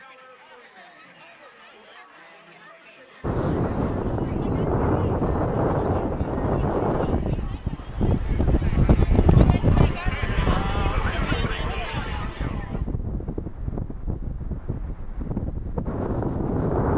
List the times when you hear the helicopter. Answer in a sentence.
You can't hear the helicopter here.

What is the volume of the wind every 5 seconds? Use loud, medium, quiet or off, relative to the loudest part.
loud, loud, medium, loud.